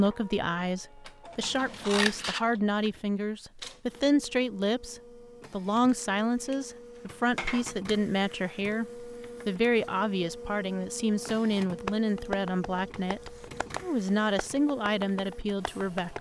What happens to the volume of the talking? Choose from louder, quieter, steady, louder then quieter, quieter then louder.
steady.